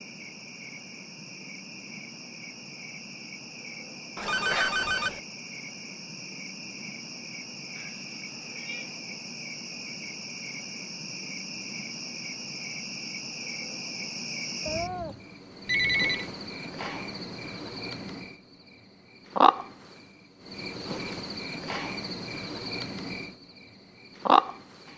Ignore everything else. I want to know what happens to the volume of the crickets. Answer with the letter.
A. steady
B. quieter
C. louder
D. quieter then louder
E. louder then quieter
C.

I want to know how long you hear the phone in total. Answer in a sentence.
The phone can be heard for 2 seconds in total.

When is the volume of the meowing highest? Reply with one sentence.
The loudest moment of the meowing is at 15 seconds.